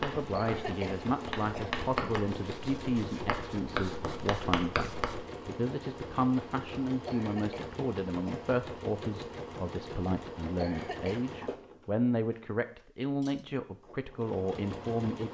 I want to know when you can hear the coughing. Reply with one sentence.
You can hear the coughing from 0.3 to 1.9 s, from 7.0 to 8.6 s and from 10.6 to 11.2 s.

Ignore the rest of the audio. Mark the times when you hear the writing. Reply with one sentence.
You can hear the writing from 0.0 to 5.2 s.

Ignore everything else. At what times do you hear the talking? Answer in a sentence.
You can hear the talking from 0.0 to 15.2 s.